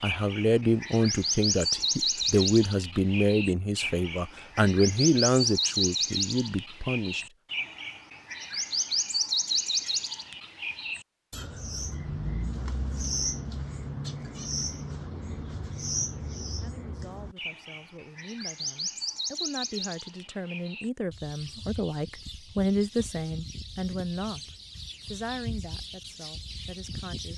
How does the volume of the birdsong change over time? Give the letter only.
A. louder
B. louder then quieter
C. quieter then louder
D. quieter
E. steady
D.